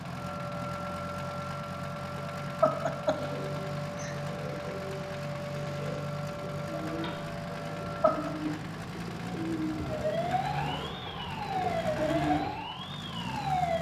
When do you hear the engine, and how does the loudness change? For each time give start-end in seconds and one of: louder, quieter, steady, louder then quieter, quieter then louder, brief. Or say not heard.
0.0-13.7 steady.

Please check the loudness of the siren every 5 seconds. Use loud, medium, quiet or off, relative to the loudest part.
medium, medium, loud.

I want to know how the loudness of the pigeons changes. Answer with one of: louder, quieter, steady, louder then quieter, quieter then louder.
louder.